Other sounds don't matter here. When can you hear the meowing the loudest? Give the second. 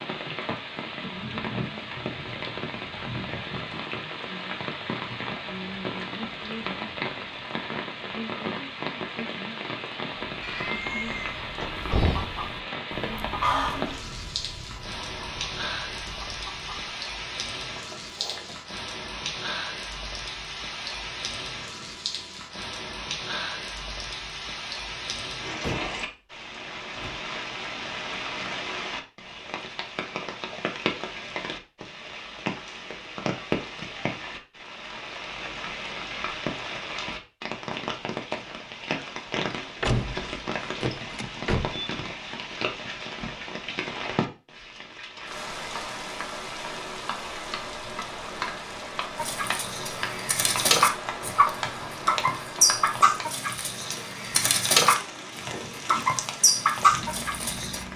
11 s.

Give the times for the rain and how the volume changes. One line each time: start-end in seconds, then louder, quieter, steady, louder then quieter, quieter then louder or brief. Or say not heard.
0.0-57.9 steady.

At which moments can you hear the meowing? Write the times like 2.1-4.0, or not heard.
10.4-12.2.